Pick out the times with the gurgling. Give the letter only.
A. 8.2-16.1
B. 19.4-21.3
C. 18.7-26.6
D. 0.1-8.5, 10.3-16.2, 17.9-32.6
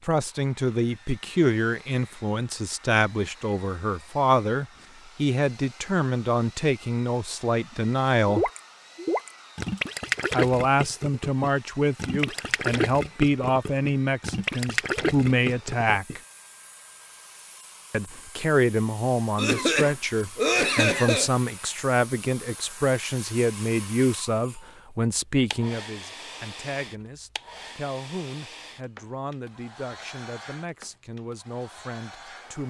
A.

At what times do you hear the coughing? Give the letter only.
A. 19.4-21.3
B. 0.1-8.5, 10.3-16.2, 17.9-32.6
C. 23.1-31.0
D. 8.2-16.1
A.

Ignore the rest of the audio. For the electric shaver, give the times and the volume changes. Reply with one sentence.
You can't hear the electric shaver here.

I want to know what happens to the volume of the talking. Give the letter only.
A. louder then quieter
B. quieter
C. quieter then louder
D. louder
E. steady
B.